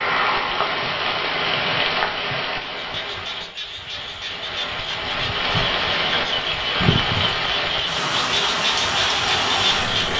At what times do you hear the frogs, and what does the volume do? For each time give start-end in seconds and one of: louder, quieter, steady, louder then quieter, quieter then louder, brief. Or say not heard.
2.7-10.1 louder.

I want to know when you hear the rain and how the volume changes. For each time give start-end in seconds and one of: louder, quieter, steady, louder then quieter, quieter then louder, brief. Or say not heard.
0.0-10.1 quieter then louder.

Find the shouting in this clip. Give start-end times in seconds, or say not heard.
not heard.